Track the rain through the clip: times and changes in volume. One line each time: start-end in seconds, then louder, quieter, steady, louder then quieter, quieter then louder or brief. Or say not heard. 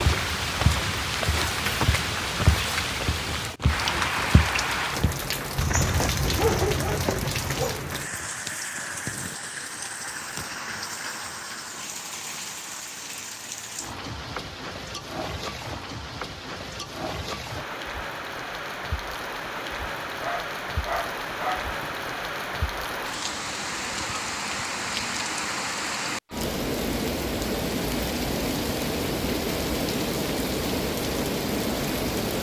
0.0-32.3 quieter then louder.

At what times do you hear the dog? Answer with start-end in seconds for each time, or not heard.
6.2-7.8, 20.2-21.8.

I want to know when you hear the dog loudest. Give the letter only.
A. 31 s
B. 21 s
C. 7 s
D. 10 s
C.